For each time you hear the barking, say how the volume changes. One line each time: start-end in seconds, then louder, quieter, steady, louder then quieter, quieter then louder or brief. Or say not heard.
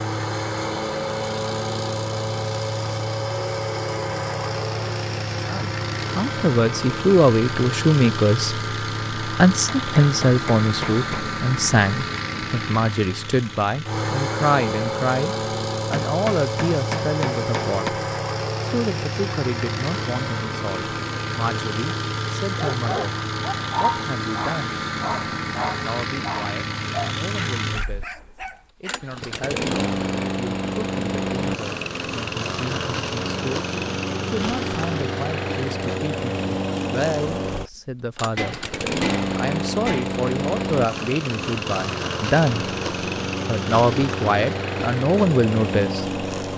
22.6-29.1 quieter.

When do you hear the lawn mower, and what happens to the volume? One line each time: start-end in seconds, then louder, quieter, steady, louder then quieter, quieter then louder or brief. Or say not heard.
0.0-46.5 steady.